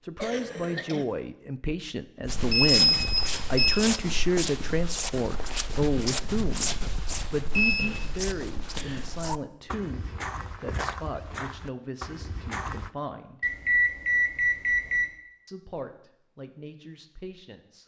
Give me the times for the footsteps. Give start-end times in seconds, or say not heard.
2.2-12.9.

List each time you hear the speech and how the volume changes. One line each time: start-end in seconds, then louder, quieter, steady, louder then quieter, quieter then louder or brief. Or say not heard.
0.0-13.4 quieter
15.4-17.8 brief.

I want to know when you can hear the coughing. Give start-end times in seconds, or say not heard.
0.1-1.1.